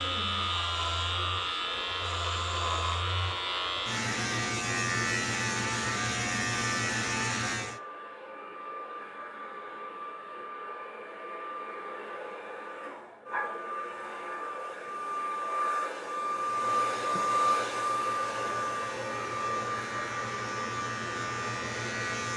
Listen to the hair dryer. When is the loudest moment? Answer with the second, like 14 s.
17 s.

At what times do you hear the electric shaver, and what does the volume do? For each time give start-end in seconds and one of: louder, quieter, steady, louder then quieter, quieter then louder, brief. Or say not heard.
0.0-7.8 steady
16.4-22.3 louder.